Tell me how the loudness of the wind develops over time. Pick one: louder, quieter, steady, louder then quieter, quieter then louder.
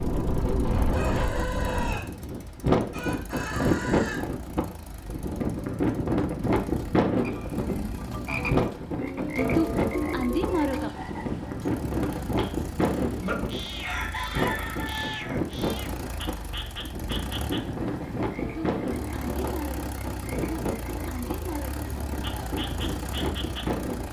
quieter.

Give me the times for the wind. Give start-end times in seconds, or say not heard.
0.0-24.0.